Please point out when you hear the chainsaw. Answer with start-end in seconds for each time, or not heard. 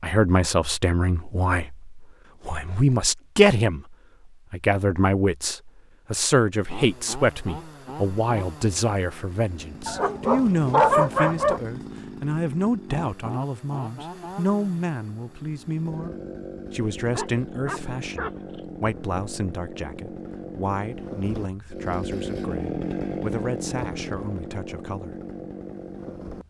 6.5-26.4.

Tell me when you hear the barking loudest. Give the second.
11 s.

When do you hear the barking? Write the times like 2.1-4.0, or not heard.
9.8-11.6, 17.1-18.6.